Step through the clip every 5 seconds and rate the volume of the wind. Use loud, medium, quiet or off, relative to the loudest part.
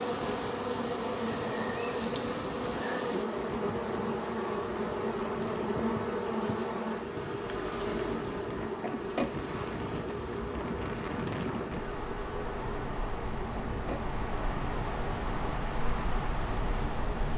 medium, medium, loud, loud.